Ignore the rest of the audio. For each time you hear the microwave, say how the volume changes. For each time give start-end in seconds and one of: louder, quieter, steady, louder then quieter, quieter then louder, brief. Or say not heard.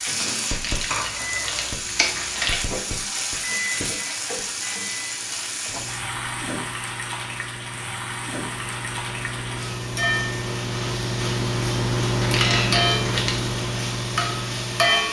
0.0-15.0 louder.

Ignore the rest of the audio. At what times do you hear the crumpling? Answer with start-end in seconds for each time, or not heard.
0.5-2.6, 12.2-13.4.